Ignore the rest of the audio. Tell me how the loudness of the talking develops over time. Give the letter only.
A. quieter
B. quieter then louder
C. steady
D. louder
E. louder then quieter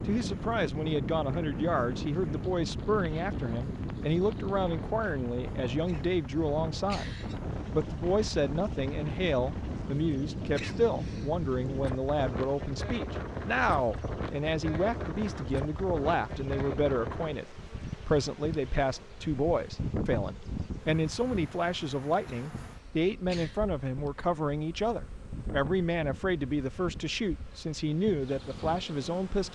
C.